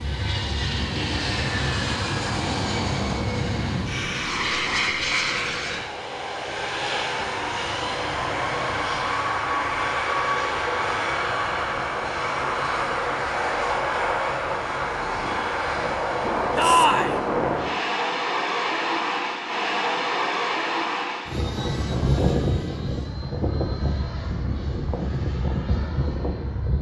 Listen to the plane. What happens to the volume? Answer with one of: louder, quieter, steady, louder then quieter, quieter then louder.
steady.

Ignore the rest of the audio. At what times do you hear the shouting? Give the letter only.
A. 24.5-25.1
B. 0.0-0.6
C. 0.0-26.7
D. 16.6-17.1
D.